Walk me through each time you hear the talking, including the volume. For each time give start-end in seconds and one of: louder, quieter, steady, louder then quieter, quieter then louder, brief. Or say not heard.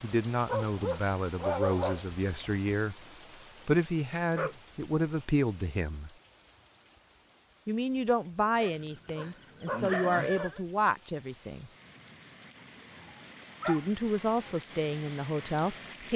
0.0-3.0 brief
3.6-6.1 brief
7.7-11.7 quieter then louder
13.7-16.1 brief.